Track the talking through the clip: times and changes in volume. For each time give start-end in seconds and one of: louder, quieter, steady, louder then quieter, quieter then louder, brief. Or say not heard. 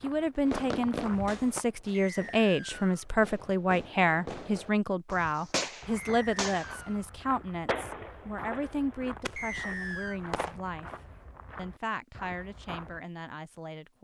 0.0-10.9 quieter
11.6-13.9 brief.